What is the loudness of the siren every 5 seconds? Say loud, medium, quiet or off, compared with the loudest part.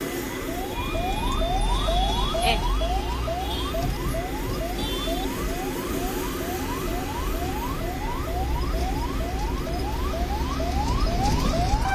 loud, medium, loud.